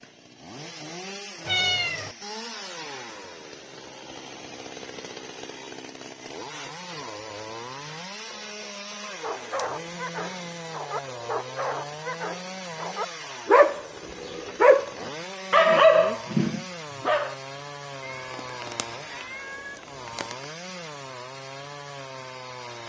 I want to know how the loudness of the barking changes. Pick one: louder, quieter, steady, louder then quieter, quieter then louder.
louder.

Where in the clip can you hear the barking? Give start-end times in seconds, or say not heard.
9.1-17.4.